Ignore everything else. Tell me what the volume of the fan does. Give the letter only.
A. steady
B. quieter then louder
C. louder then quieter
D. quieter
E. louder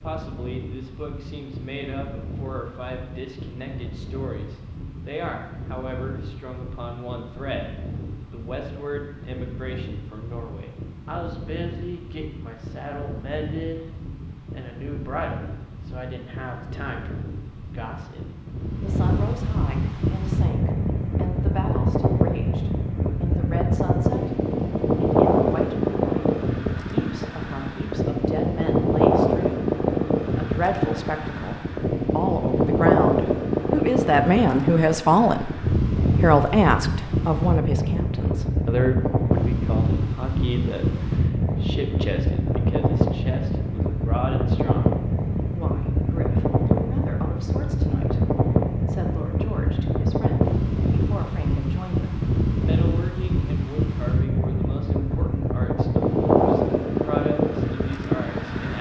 E.